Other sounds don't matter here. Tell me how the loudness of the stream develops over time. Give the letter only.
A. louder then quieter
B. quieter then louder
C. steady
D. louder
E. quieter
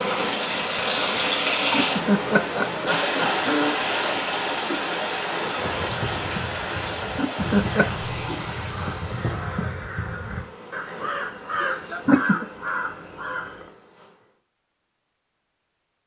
E.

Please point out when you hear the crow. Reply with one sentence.
You can hear the crow from 5.5 to 13.7 s.